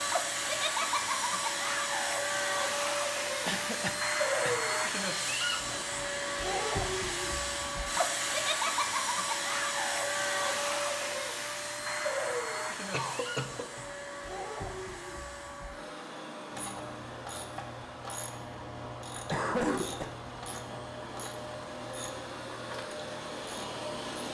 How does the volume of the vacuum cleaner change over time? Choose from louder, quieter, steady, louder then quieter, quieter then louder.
quieter.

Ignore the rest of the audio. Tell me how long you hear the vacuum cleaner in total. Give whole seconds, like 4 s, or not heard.
24 s.